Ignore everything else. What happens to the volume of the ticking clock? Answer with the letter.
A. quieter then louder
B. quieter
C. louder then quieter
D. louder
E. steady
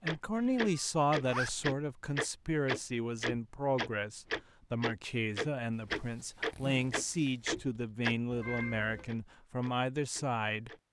B.